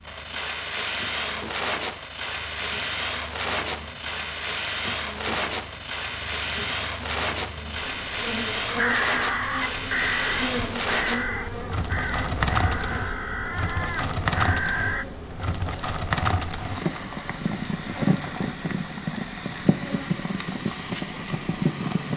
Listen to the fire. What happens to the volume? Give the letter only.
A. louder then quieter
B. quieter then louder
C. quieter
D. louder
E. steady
E.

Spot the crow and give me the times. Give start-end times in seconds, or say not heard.
8.7-15.1.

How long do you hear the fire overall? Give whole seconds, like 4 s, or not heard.
22 s.